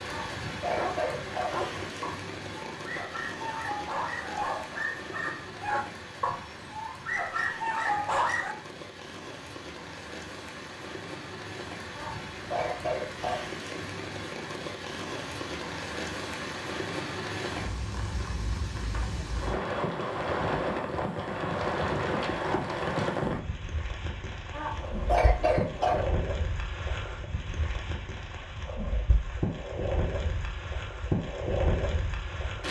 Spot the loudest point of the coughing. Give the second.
25 s.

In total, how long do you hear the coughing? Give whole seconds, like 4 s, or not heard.
5 s.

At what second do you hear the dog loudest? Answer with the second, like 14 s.
8 s.